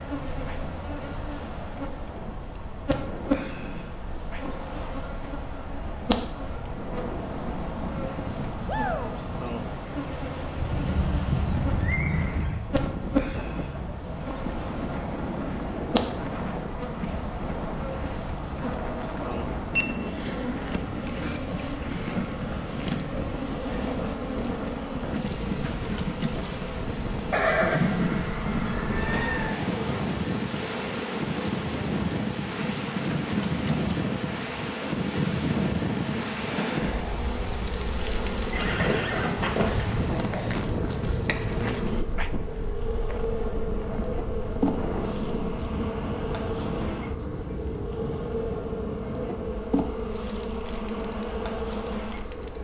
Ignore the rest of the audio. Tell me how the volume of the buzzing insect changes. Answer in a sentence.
The loudness of the buzzing insect stays about the same.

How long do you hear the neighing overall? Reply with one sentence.
The neighing can be heard for 6 seconds in total.